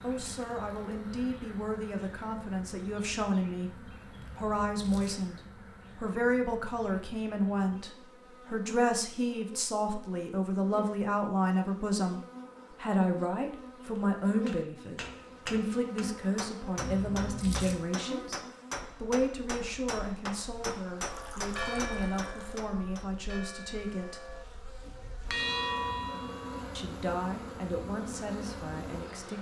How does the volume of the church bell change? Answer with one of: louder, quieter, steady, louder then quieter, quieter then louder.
quieter then louder.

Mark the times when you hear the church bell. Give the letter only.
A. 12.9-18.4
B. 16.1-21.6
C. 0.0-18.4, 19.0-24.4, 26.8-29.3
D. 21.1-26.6
D.